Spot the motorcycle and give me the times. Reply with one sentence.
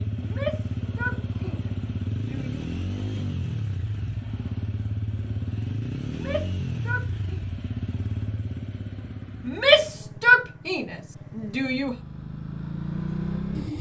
You can hear the motorcycle from 0.0 to 13.7 s.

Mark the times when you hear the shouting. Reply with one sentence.
The shouting can be heard from 0.1 to 2.6 s, from 6.0 to 7.4 s and from 9.4 to 11.9 s.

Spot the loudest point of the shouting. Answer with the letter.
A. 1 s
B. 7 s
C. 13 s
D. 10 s
D.